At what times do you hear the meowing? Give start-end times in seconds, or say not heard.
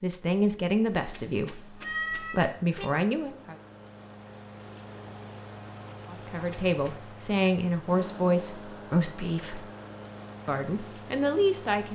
1.0-2.9, 6.3-7.0.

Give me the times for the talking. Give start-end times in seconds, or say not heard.
0.0-3.5, 6.1-9.7, 10.4-11.8.